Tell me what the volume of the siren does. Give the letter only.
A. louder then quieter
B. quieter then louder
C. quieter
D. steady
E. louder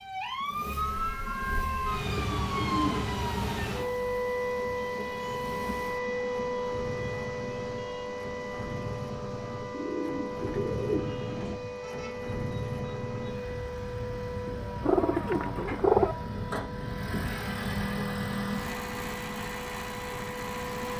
C.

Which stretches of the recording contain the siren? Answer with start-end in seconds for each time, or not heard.
0.0-20.9.